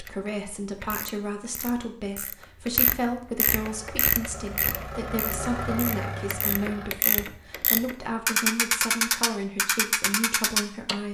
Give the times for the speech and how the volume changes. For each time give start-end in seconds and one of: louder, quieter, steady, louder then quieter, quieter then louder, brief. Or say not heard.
0.0-11.0 steady.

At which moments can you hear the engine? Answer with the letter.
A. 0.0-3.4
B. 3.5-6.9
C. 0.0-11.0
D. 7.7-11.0
B.